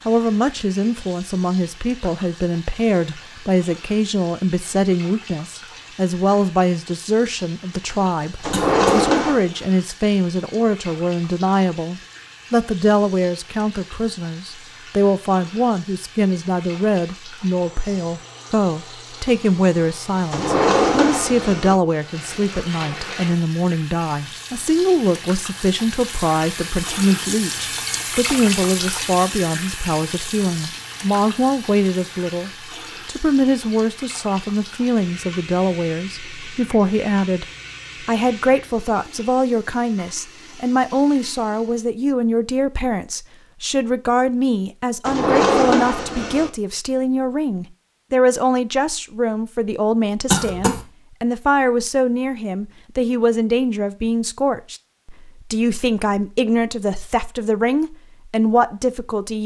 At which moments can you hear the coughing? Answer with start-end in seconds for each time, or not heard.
8.5-9.1, 50.3-50.9.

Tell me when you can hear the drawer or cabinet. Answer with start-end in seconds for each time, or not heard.
8.4-9.4, 20.3-21.8, 45.0-46.5.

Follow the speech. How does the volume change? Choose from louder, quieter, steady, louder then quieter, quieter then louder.
steady.